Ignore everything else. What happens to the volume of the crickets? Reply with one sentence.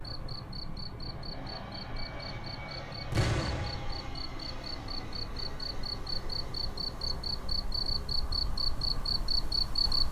The loudness of the crickets goes up.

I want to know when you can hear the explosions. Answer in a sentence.
You can hear the explosions from 3.1 to 4.0 s.